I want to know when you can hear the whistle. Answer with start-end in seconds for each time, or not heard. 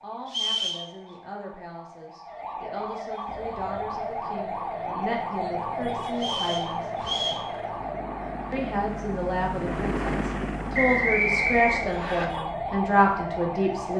0.2-0.8, 6.2-7.5, 10.7-12.2.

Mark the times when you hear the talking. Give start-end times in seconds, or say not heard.
0.0-6.8, 8.5-13.9.